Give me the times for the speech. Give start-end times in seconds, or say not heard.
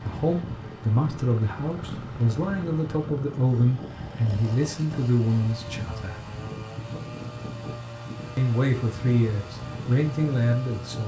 0.0-6.2, 8.3-11.0.